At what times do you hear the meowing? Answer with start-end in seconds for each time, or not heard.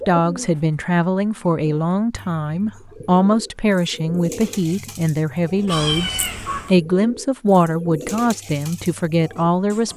5.7-6.8.